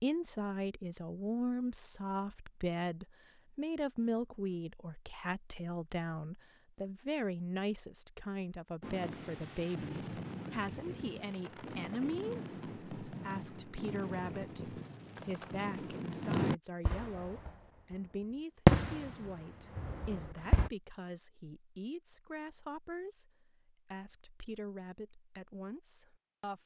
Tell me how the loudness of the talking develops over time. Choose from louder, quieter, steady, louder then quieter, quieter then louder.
quieter.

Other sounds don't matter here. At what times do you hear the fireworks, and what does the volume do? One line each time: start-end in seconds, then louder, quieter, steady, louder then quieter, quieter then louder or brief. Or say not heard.
8.8-17.9 louder
18.6-20.7 brief.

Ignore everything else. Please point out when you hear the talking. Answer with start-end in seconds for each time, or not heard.
0.0-26.6.